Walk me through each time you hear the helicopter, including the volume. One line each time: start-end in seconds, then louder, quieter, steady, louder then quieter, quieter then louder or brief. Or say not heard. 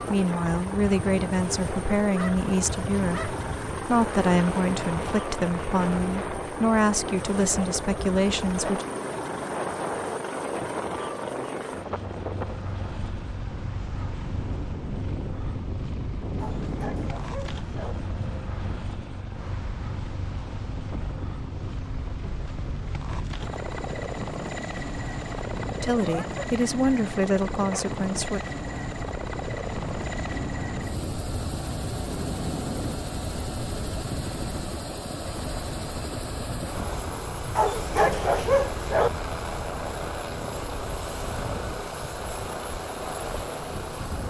0.0-44.2 steady.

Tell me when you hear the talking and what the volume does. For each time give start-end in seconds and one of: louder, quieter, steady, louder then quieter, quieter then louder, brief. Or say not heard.
0.0-8.8 steady
25.8-28.4 brief.